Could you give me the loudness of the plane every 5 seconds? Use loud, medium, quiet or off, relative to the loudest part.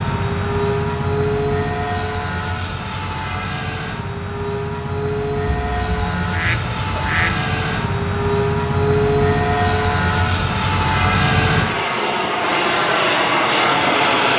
medium, loud, loud.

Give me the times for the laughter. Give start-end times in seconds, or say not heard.
not heard.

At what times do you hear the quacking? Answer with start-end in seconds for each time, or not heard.
5.7-7.4.